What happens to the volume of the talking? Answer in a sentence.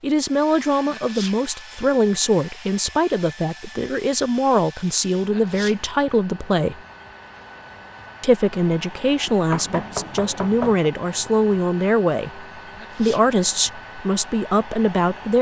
The volume of the talking stays about the same.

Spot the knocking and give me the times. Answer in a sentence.
The knocking can be heard from 9.5 to 10.9 s.